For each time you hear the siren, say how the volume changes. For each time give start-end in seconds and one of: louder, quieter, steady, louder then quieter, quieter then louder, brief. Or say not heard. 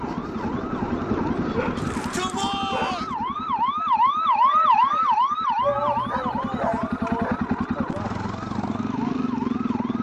0.0-9.9 louder then quieter.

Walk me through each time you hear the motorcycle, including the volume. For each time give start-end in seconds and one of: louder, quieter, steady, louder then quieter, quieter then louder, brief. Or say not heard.
0.0-9.9 quieter then louder.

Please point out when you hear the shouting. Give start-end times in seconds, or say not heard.
1.8-3.1, 5.6-8.2.